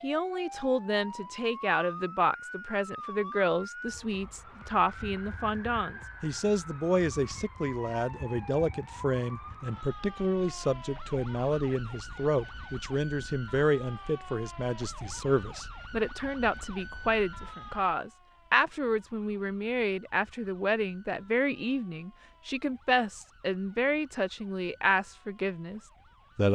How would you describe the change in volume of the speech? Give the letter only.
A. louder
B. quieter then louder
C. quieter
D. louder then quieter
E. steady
E.